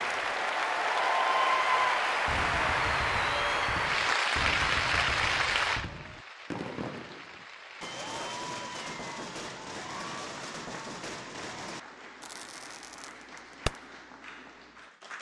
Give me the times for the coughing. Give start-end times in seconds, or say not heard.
not heard.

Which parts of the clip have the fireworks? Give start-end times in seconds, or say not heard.
2.2-13.8.